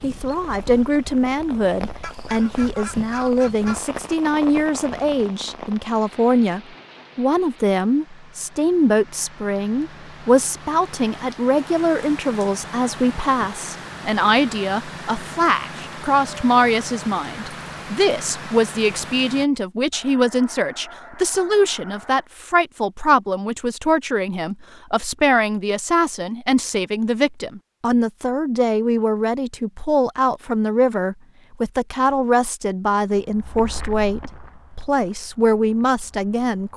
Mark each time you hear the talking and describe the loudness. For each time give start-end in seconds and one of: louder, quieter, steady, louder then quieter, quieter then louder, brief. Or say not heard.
0.0-36.7 steady.